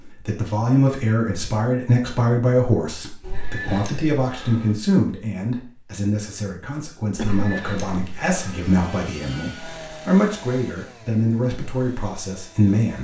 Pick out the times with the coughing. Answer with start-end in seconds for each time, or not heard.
7.2-7.7.